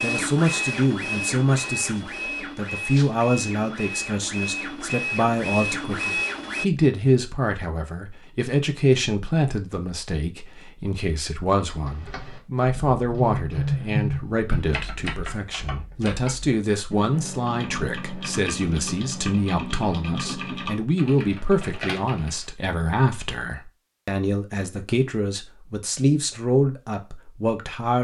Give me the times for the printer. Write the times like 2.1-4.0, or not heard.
0.0-6.7.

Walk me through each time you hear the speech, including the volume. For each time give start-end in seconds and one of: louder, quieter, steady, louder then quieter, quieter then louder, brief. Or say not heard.
0.0-27.9 steady.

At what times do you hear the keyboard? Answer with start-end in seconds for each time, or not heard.
11.7-22.6.